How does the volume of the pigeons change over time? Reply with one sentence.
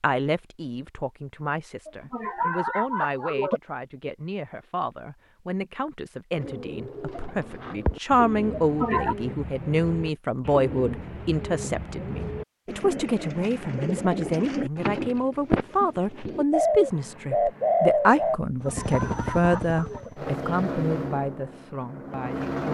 The loudness of the pigeons goes up.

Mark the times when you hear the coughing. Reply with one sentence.
You can hear the coughing from 1.9 to 3.6 s, from 8.6 to 9.2 s and from 18.6 to 20.1 s.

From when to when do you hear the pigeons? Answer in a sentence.
You can hear the pigeons from 6.3 to 18.4 s.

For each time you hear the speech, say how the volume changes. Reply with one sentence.
You can hear the speech from 0.0 to 22.6 s, getting louder.